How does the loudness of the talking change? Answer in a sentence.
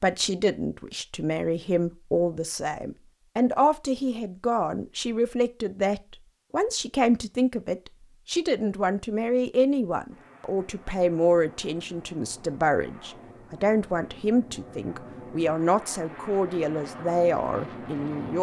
The volume of the talking stays about the same.